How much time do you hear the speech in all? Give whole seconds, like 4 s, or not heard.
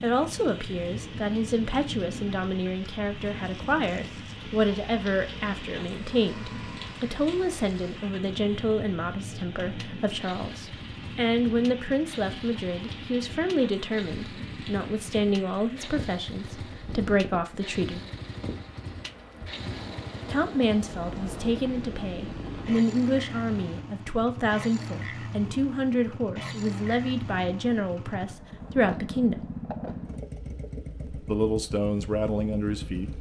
29 s.